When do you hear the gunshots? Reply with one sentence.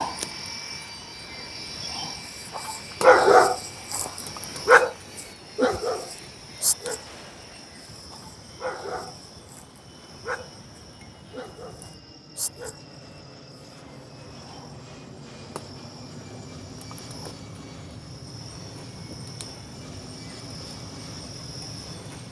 You can hear the gunshots from 7.0 to 7.5 s.